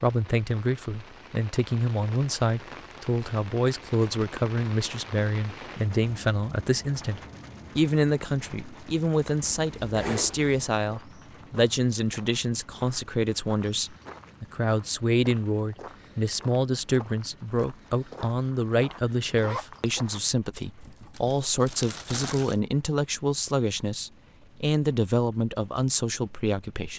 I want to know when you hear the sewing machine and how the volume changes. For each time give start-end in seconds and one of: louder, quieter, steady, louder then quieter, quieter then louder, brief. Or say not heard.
not heard.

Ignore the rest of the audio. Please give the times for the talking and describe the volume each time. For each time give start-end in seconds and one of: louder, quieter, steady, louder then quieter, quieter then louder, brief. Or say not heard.
0.0-26.9 steady.